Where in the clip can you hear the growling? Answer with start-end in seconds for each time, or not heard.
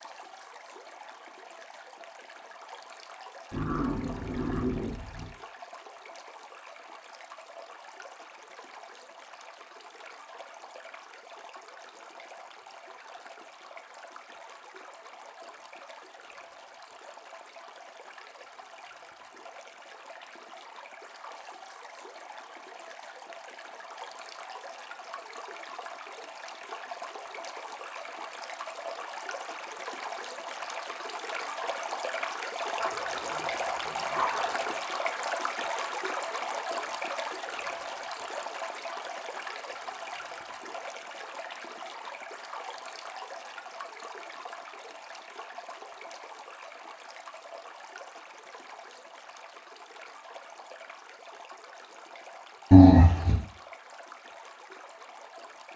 3.5-5.3, 32.8-34.8, 52.7-53.4.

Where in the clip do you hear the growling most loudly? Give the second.
53 s.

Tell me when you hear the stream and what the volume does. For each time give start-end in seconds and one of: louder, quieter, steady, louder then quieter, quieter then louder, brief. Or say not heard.
0.0-55.7 louder then quieter.